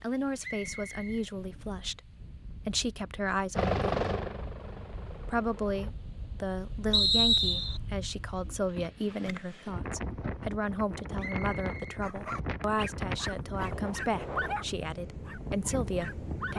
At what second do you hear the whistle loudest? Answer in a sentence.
The volume of the whistle peaks at 7 seconds.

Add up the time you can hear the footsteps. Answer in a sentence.
The footsteps can't be heard in this clip.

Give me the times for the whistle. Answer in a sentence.
The whistle can be heard from 0.4 to 1.2 s, from 6.9 to 7.8 s and from 11.2 to 12.0 s.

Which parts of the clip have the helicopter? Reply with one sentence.
You can hear the helicopter from 3.5 to 6.0 s.